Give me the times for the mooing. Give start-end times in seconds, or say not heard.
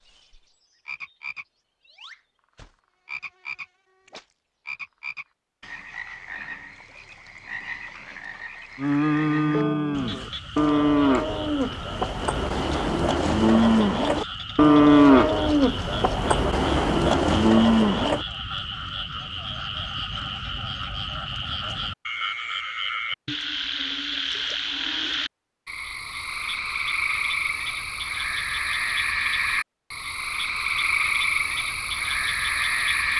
8.8-18.2.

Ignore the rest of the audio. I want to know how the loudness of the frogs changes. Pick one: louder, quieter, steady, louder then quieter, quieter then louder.
louder.